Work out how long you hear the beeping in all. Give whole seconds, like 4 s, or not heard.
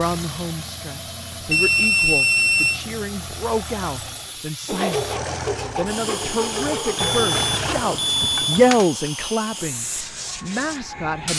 3 s.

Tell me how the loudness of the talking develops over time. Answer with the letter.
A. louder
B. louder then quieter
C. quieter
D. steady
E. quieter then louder
B.